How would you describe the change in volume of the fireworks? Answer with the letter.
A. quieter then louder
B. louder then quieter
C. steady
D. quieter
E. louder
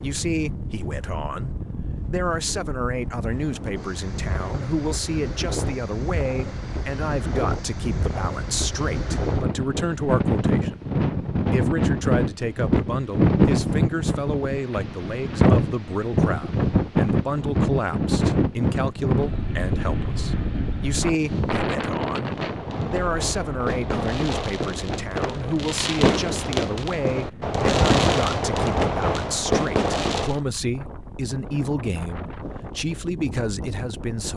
E.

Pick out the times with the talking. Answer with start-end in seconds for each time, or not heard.
0.0-34.3.